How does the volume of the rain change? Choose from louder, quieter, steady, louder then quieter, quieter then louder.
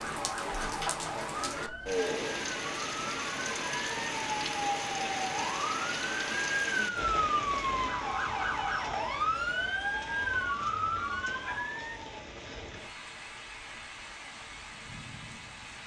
quieter.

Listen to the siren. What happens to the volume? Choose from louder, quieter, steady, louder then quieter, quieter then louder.
louder.